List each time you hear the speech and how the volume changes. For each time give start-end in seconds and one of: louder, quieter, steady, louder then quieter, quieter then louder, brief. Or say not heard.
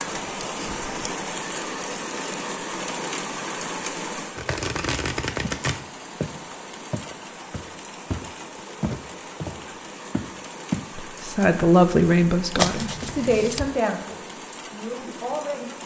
10.9-15.8 quieter.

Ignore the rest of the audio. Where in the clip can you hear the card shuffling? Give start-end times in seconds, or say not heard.
4.3-5.8, 12.6-13.7.